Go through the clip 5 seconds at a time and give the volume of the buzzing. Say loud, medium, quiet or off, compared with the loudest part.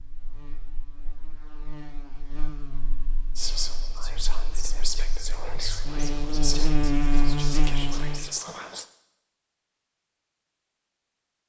quiet, loud, off.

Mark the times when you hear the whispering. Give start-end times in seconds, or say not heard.
3.4-8.8.